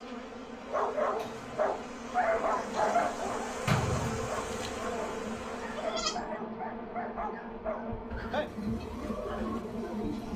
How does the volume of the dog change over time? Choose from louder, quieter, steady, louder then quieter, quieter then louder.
quieter.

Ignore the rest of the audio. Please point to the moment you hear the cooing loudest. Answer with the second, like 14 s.
4 s.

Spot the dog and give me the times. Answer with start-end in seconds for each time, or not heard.
0.7-10.0.